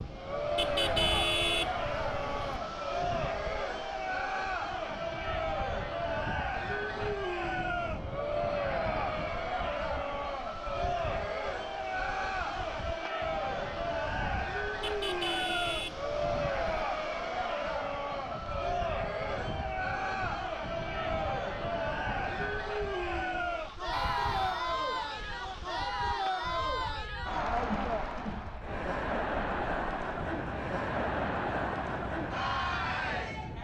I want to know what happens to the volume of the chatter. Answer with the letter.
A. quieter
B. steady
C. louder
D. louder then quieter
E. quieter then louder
B.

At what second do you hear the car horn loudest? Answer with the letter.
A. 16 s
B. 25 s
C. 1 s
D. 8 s
C.